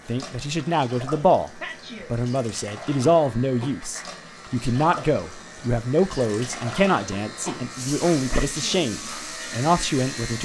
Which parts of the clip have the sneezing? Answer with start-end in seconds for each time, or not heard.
1.6-2.1, 8.3-8.8.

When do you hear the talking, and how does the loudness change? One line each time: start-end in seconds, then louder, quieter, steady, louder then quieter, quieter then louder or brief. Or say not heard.
0.1-10.4 steady.